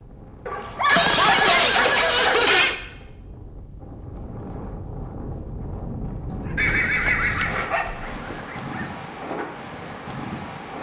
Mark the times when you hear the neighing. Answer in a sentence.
The neighing can be heard from 0.8 to 2.8 s and from 6.5 to 8.4 s.